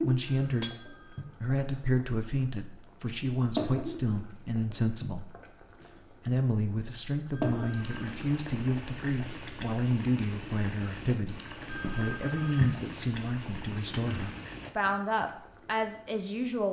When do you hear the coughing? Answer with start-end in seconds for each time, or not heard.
not heard.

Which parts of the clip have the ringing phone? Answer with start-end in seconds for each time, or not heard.
0.2-1.2, 7.3-8.0, 11.7-12.7.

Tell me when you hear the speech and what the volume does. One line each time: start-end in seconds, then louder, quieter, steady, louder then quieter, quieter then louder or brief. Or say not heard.
0.0-16.6 steady.